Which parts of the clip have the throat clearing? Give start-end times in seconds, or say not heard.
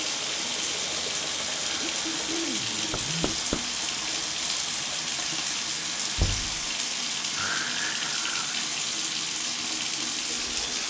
1.6-2.8, 7.3-8.6.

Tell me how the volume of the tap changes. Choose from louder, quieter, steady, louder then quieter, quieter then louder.
steady.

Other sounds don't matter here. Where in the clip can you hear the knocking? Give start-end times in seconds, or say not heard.
2.9-3.6, 6.2-6.7.